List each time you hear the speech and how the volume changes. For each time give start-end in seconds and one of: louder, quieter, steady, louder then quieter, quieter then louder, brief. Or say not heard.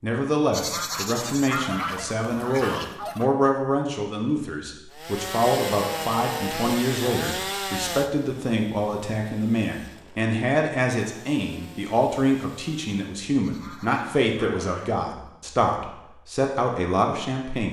0.0-17.6 steady.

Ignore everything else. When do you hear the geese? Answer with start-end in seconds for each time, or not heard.
0.5-3.3, 13.4-15.0.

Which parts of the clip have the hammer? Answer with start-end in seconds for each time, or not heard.
not heard.